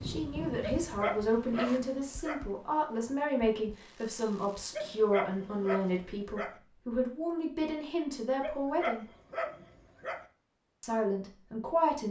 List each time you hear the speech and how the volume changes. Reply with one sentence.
You can hear the speech from 0.0 to 9.1 s, at a steady volume; and briefly from 10.8 to 12.0 s.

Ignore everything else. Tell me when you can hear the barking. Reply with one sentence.
You can hear the barking from 0.6 to 2.5 s, from 4.7 to 6.5 s and from 8.4 to 10.2 s.